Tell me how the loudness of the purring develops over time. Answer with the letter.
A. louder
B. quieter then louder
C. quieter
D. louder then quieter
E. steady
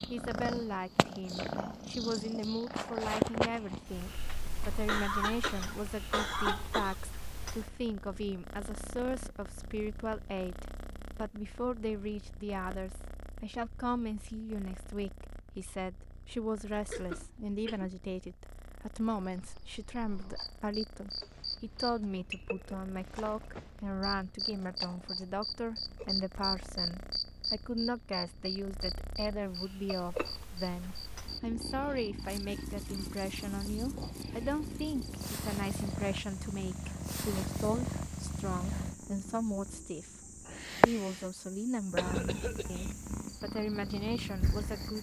B.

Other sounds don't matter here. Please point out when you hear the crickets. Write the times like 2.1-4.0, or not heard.
19.2-44.9.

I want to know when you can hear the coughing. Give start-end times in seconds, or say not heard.
4.2-7.0, 16.7-17.9, 42.0-43.0.